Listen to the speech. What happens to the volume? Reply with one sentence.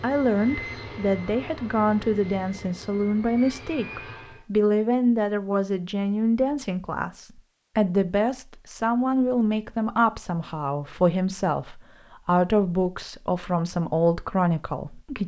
The loudness of the speech stays about the same.